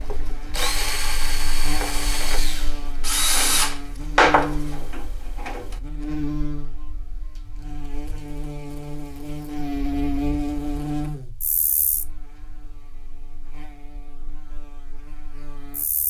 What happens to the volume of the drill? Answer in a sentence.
The loudness of the drill goes up, then down.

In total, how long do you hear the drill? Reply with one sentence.
The drill can be heard for 6 seconds in total.